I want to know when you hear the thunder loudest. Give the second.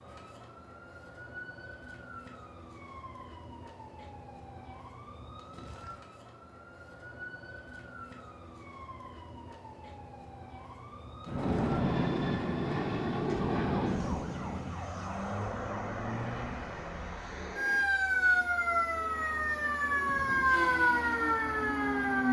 12 s.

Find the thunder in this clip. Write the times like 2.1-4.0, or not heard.
11.2-14.8.